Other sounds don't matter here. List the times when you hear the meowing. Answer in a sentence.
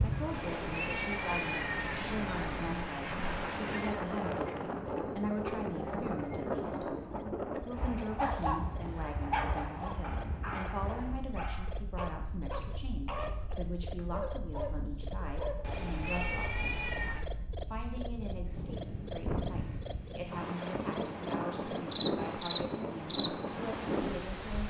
The meowing can be heard from 0.3 to 3.0 s and from 15.6 to 17.3 s.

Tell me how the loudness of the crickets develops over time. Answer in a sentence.
The loudness of the crickets goes up.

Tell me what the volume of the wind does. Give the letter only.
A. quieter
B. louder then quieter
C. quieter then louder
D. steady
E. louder
C.